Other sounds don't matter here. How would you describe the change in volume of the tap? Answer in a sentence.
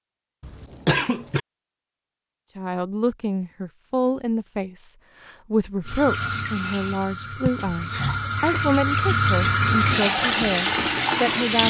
The loudness of the tap goes up.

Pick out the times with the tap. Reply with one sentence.
You can hear the tap from 5.8 to 11.6 s.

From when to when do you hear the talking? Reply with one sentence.
You can hear the talking from 2.5 to 11.6 s.